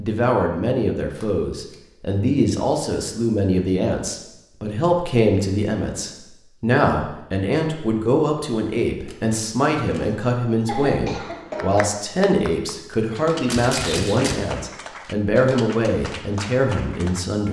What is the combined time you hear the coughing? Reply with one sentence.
The coughing can be heard for 2 seconds in total.